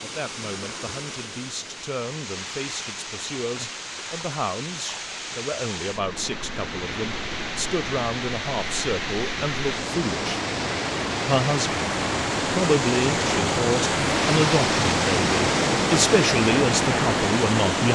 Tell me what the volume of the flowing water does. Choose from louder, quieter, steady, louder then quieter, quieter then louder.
louder.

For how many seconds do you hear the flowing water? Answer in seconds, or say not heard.
18 s.